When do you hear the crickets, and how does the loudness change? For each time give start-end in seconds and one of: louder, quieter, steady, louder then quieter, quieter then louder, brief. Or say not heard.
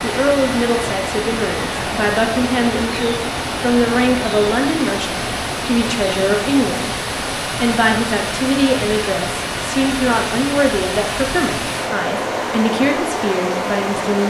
not heard.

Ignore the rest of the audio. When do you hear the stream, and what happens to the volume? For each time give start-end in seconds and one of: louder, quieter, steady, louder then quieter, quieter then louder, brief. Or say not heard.
0.0-14.2 steady.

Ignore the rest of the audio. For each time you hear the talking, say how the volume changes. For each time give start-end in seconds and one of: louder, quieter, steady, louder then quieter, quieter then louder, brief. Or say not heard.
0.0-14.2 steady.